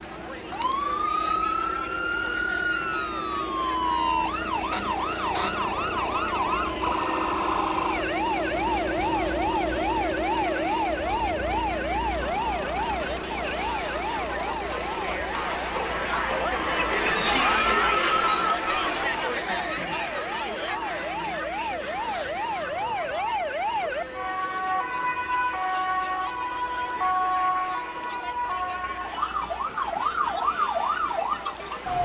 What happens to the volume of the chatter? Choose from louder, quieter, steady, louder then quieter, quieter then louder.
louder then quieter.